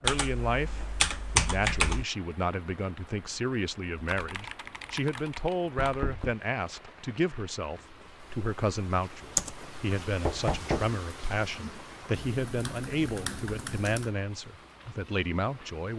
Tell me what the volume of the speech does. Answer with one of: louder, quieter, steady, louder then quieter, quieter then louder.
steady.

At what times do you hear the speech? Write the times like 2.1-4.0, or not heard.
0.0-15.9.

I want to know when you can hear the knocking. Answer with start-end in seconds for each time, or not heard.
5.8-6.3, 10.2-10.9.